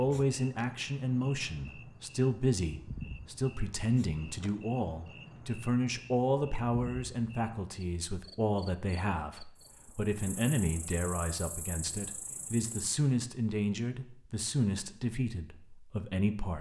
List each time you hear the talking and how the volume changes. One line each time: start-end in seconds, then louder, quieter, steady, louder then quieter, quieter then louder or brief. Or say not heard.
0.0-16.5 steady.